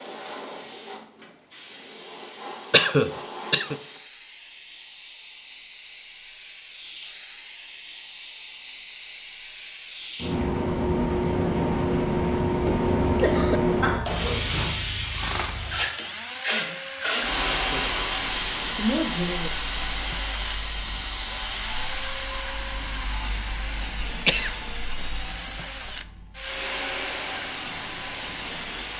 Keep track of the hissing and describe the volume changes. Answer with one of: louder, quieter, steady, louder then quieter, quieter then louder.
louder then quieter.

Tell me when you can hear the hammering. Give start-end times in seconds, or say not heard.
not heard.